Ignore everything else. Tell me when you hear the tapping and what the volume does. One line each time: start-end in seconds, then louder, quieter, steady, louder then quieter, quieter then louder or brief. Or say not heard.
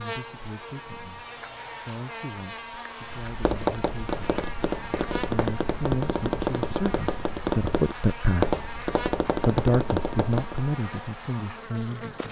3.1-10.6 steady.